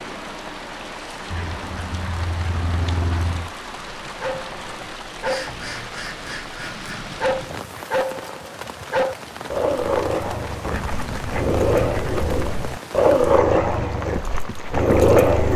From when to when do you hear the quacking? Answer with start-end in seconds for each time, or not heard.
1.3-3.5, 5.2-7.2, 10.7-12.7.